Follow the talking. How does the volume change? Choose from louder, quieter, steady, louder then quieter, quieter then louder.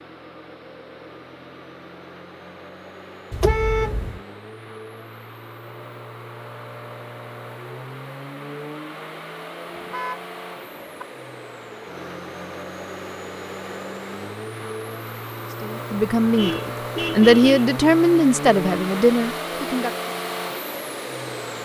louder then quieter.